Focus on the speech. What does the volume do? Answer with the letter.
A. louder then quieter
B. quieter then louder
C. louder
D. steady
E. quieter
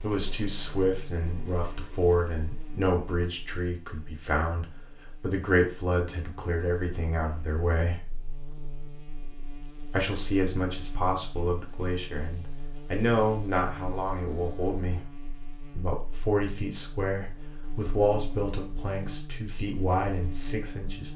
D.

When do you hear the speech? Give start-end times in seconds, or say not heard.
0.0-8.0, 9.9-15.1, 15.8-21.1.